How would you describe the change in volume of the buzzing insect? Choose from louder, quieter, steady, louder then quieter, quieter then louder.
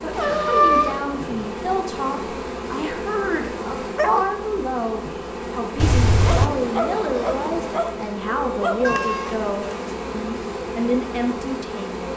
steady.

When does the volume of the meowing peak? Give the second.
1 s.